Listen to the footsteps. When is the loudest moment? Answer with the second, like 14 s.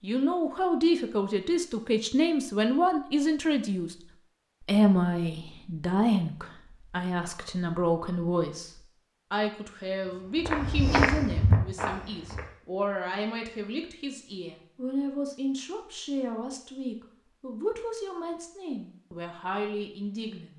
11 s.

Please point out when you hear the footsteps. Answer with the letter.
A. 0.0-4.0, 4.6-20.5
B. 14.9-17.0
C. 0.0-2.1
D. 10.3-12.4
D.